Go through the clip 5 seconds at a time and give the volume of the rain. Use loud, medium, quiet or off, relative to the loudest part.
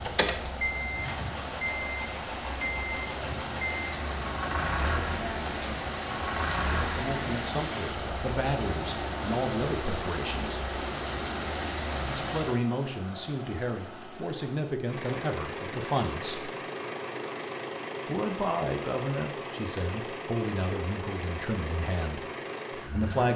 loud, loud, loud, off, off.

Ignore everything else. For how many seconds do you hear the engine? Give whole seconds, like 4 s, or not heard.
23 s.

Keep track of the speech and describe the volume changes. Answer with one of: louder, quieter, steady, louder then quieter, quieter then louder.
steady.